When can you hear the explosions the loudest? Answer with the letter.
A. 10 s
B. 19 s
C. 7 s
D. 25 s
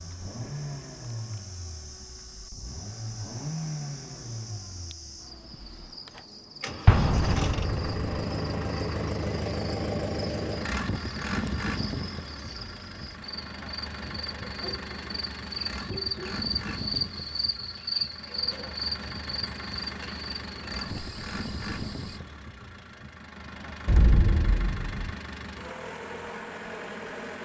C.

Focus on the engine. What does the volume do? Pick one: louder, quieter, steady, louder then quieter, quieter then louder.
louder then quieter.